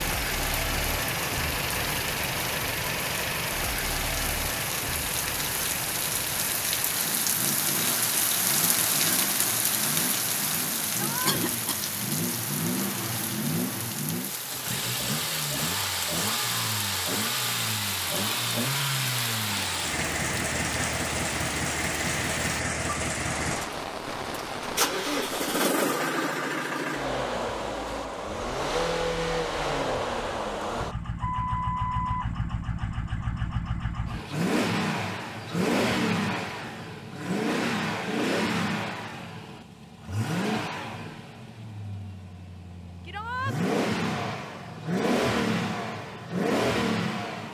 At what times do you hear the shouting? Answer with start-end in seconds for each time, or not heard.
10.9-11.4, 43.0-43.5.